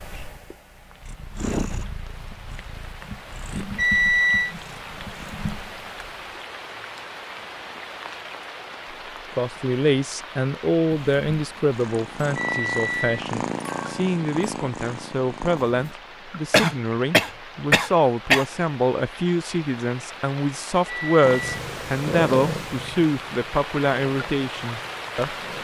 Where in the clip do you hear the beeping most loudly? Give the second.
4 s.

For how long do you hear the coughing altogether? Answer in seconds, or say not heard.
2 s.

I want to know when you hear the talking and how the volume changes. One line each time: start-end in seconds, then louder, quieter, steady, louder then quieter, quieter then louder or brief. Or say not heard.
9.3-25.4 steady.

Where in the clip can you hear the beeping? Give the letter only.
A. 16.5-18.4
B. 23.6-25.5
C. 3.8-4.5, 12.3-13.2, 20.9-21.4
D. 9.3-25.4
C.